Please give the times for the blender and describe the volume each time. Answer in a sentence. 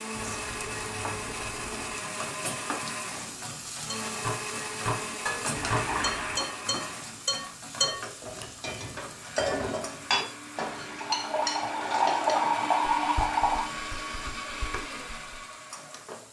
You can hear the blender from 0.0 to 16.2 s, getting quieter then louder.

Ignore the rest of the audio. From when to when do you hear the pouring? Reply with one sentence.
The pouring can be heard from 0.1 to 2.0 s, from 5.5 to 6.5 s and from 11.0 to 13.7 s.